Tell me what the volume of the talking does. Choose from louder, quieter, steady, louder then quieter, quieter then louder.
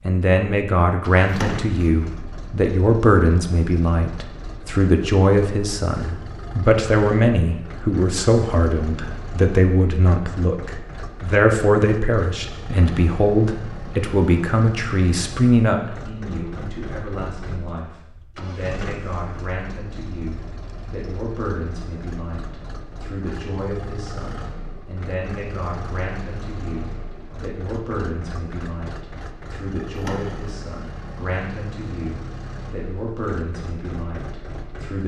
quieter.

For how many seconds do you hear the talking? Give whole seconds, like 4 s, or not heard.
35 s.